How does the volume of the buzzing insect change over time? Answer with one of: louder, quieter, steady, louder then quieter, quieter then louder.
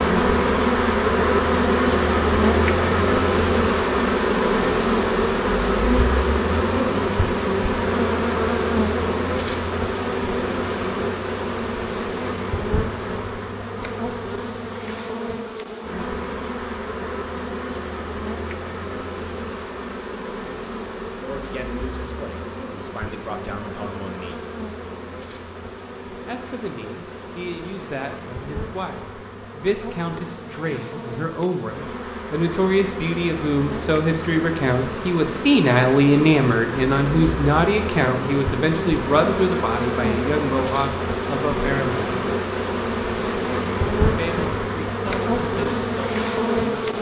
quieter then louder.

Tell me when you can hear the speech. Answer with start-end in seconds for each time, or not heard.
21.1-24.4, 26.2-42.3, 44.1-46.9.